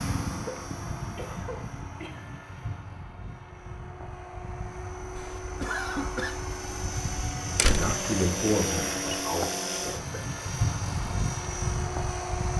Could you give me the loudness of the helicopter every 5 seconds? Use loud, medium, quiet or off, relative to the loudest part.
medium, loud, loud.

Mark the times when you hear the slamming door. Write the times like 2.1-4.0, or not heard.
7.5-8.0.